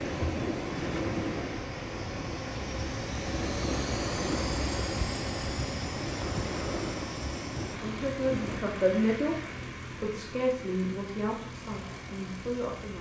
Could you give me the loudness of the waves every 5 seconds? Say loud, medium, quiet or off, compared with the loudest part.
loud, loud, off.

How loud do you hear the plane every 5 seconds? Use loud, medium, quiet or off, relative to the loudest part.
loud, loud, medium.